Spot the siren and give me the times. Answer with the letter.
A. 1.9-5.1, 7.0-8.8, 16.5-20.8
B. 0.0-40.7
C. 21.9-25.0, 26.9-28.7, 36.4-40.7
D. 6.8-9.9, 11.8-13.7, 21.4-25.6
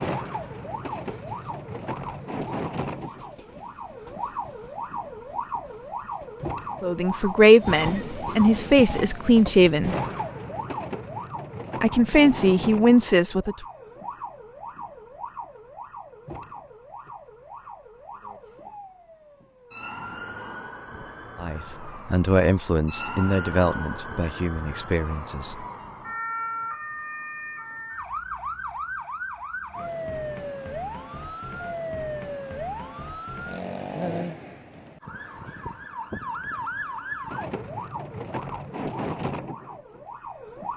B.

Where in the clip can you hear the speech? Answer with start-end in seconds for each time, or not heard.
6.8-9.9, 11.8-13.7, 21.4-25.6.